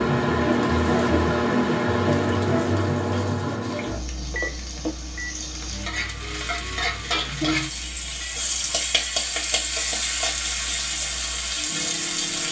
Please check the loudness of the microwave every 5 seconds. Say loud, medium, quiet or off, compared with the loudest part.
loud, quiet, quiet.